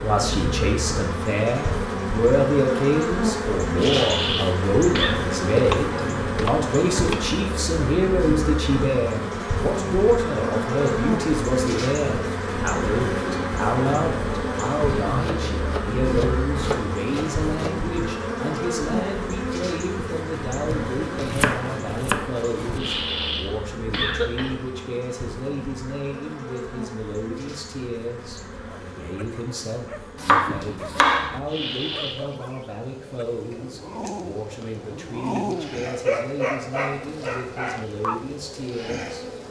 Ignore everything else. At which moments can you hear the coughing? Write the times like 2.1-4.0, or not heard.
3.8-5.2, 22.8-24.5, 31.4-32.2.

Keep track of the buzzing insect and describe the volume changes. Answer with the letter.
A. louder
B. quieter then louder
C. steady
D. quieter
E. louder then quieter
D.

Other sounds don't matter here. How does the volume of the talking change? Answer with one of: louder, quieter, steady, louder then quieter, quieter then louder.
quieter.